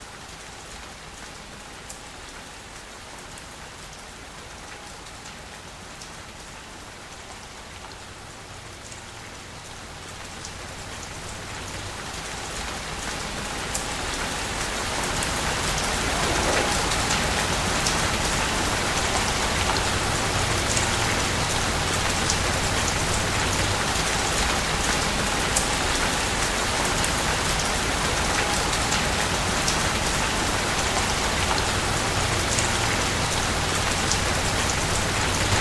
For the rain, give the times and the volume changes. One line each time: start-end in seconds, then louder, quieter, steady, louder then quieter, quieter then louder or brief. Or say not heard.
0.0-35.5 louder.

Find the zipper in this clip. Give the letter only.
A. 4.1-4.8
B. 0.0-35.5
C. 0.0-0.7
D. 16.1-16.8
D.